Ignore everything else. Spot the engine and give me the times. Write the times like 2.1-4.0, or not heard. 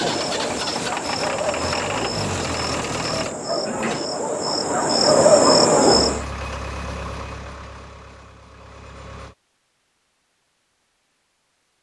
0.0-3.4, 5.9-9.3.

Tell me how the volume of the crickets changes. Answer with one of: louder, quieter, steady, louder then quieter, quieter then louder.
louder.